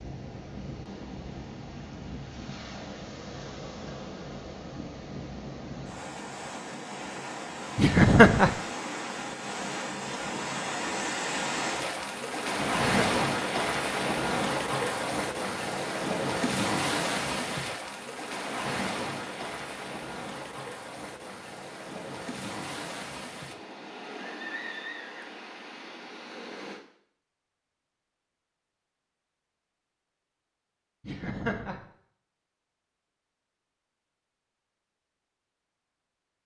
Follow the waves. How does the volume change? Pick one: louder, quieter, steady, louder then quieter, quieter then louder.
louder then quieter.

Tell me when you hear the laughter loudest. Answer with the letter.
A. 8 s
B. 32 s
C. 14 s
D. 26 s
A.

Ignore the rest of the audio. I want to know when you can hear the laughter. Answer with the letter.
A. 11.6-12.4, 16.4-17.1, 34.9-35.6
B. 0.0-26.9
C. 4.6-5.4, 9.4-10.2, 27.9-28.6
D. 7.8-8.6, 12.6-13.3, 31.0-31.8
D.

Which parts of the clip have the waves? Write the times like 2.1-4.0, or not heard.
0.0-26.9.